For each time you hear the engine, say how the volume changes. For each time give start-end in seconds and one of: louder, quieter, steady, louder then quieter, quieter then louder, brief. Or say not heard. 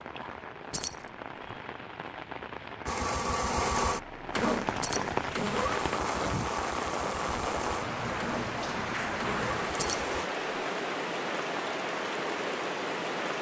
2.9-10.3 quieter.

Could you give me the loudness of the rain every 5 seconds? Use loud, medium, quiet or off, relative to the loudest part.
medium, loud, loud.